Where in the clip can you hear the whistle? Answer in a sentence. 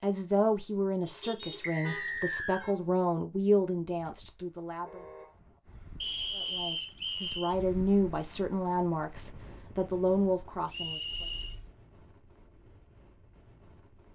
The whistle can be heard from 1.6 to 2.6 s, from 6.0 to 7.5 s and from 10.7 to 11.6 s.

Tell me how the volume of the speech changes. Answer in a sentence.
The volume of the speech goes down, then up.